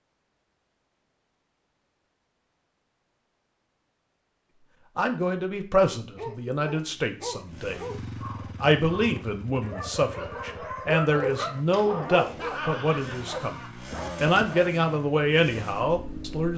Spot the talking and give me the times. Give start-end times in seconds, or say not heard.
5.0-7.8, 8.6-13.6, 14.2-16.5.